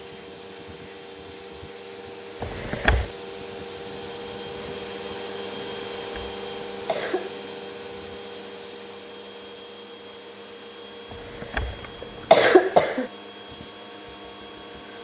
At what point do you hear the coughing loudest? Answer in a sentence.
The volume of the coughing peaks at 12 seconds.